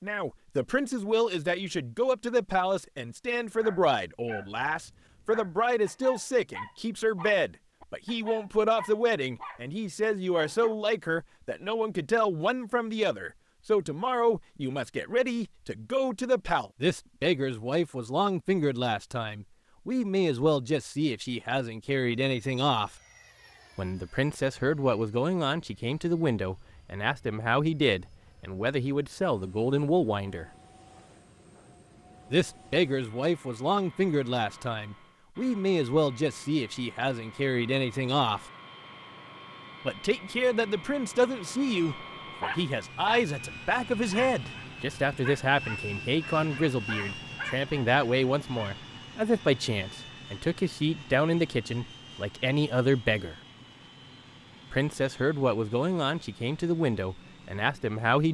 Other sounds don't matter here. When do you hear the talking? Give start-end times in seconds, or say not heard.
0.0-22.9, 23.8-30.4, 32.3-38.4, 39.9-53.4, 54.7-58.2.